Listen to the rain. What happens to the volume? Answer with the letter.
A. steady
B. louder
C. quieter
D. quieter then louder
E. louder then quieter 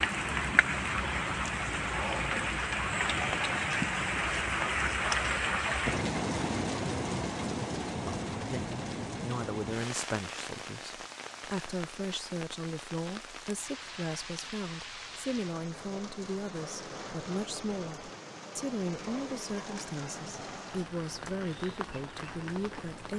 C.